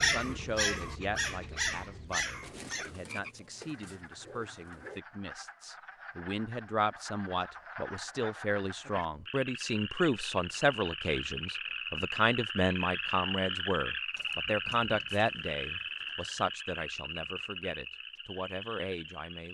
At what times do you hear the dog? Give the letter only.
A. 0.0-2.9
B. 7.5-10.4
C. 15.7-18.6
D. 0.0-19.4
A.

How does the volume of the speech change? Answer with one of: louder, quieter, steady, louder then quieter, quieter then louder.
louder then quieter.